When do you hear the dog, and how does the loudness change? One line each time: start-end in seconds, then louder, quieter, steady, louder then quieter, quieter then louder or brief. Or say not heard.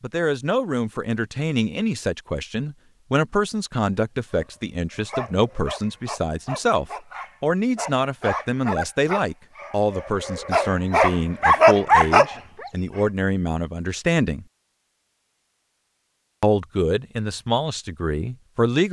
4.3-12.7 louder.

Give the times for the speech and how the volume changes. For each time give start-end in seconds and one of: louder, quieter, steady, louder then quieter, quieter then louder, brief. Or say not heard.
0.0-14.4 steady
16.4-18.8 brief.